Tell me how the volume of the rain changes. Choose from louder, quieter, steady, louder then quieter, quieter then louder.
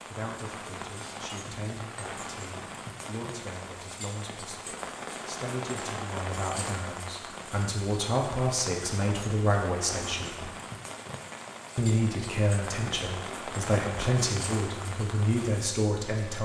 steady.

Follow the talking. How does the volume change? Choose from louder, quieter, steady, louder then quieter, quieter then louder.
louder.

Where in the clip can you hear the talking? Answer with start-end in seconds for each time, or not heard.
0.0-10.4, 11.8-16.4.